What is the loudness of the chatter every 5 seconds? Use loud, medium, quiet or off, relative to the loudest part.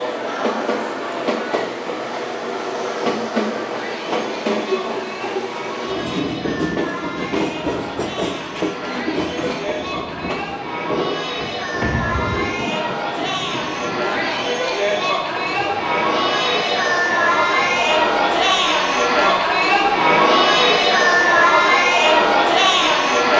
quiet, quiet, medium, loud, loud.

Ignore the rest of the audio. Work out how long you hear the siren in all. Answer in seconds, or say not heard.
not heard.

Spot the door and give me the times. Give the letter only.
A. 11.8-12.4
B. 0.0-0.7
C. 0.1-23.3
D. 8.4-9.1
A.